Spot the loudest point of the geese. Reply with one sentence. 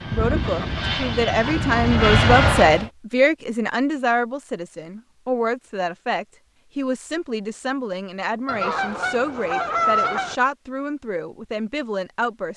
The volume of the geese peaks at 10 seconds.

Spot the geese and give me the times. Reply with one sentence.
You can hear the geese from 0.1 to 1.7 s and from 8.4 to 10.3 s.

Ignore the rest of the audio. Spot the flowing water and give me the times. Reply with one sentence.
You can't hear the flowing water here.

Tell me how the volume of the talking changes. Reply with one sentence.
The loudness of the talking goes down.